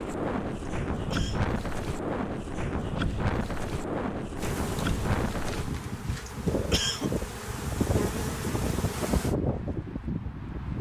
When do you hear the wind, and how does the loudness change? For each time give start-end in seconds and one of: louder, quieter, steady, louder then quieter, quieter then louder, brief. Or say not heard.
0.0-10.7 steady.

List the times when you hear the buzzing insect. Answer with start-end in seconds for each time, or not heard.
4.3-9.3.